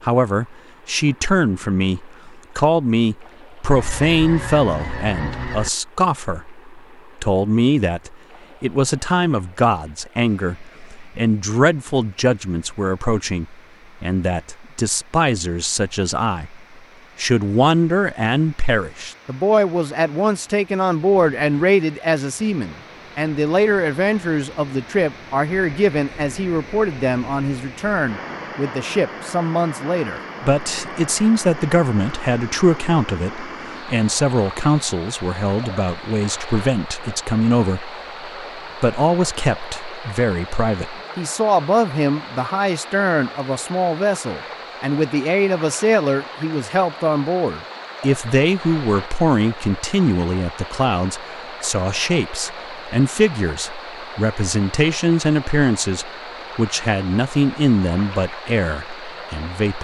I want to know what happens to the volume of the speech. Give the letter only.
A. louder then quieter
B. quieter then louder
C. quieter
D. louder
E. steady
E.